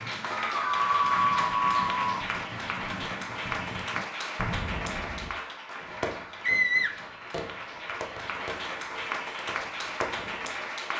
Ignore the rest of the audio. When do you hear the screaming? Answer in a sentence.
You can hear the screaming from 0.3 to 2.2 s and from 6.4 to 7.0 s.